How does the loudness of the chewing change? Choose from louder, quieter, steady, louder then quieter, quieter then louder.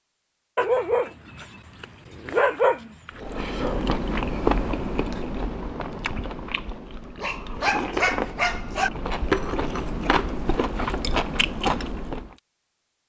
quieter then louder.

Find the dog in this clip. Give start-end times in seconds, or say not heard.
0.6-3.2, 7.2-8.9.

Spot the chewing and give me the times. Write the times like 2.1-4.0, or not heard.
3.1-12.3.